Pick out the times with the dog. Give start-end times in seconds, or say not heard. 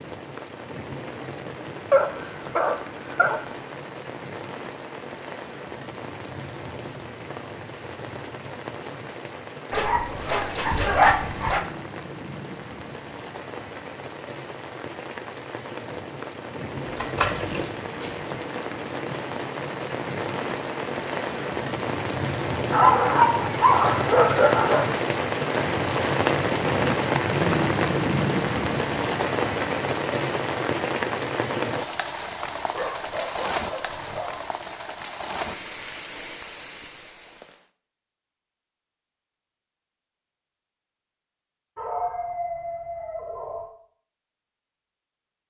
1.9-3.4, 9.7-11.7, 22.7-24.9, 32.7-34.4, 41.8-43.6.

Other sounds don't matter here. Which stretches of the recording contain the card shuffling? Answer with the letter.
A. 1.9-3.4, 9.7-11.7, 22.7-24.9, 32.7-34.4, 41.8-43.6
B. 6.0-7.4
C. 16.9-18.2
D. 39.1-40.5
C.